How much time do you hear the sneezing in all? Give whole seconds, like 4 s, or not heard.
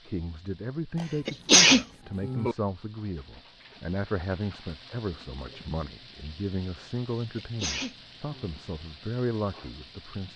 3 s.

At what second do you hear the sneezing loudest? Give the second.
2 s.